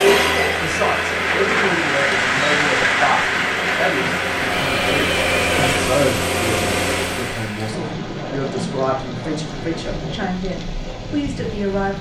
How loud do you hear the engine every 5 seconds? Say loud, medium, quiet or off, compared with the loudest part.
loud, loud, off.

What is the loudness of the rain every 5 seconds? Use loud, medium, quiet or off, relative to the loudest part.
loud, medium, medium.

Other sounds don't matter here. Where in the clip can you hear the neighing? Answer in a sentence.
You can hear the neighing from 4.5 to 5.8 s.